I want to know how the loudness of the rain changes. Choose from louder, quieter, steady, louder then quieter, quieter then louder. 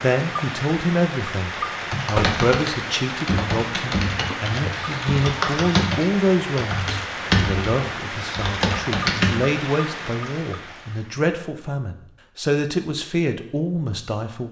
steady.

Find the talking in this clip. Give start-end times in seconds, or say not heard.
0.0-14.4.